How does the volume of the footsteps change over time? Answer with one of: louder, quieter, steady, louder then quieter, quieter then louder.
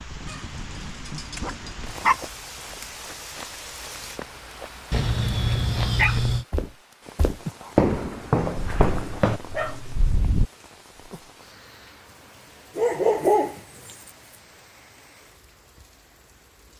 louder.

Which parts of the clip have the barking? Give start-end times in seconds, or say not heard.
0.2-2.2, 4.9-6.5, 8.6-10.4, 12.8-13.9.